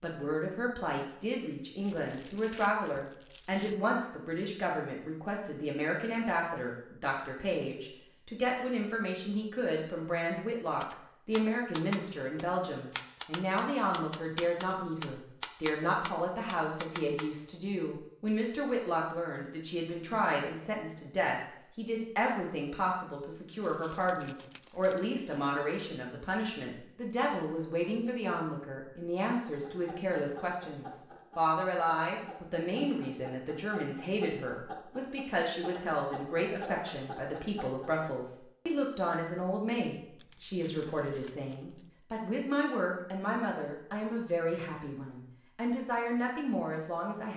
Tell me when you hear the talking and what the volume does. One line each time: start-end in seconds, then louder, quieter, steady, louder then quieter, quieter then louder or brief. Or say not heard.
0.0-47.3 steady.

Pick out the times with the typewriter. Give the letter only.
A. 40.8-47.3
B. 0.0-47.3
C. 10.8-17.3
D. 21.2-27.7
C.